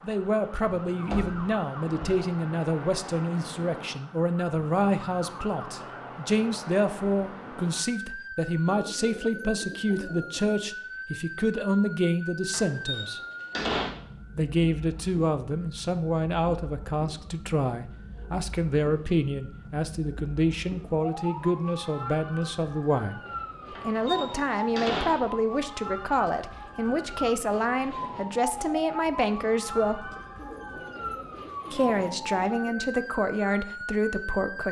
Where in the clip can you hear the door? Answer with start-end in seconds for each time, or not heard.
1.1-2.2, 12.5-13.9, 23.8-25.3.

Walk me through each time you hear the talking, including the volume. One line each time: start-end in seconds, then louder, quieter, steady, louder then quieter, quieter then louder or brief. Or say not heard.
0.0-13.2 steady
14.3-30.1 steady
31.7-34.6 brief.